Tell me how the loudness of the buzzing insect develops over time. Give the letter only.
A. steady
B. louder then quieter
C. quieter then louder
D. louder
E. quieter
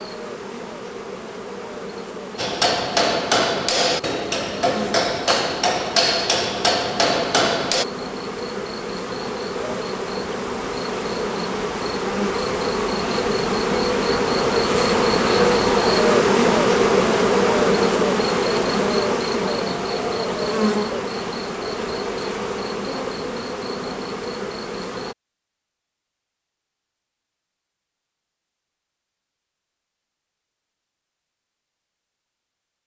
B.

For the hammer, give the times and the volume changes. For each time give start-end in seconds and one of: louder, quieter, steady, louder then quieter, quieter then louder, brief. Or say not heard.
2.4-7.8 steady.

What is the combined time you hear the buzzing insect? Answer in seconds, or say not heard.
25 s.